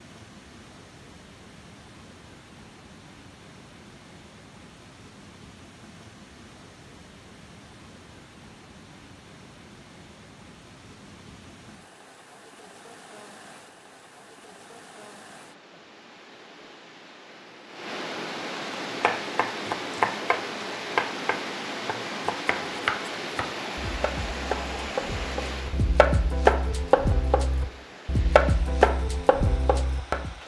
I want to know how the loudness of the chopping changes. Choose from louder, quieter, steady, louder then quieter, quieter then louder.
quieter then louder.